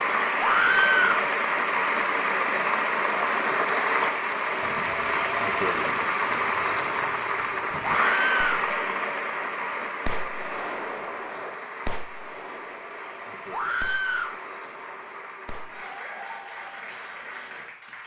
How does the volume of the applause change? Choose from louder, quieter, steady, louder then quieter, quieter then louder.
quieter.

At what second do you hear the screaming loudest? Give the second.
1 s.